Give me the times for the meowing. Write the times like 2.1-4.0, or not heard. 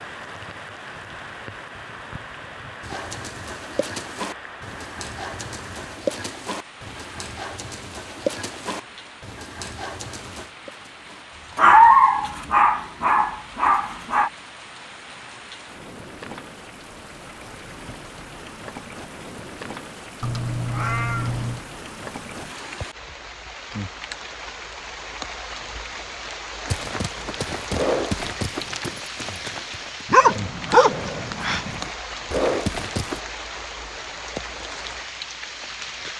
20.2-21.6.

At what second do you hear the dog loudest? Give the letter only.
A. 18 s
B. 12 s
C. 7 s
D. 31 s
B.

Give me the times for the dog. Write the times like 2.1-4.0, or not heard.
11.6-14.3, 30.1-31.8.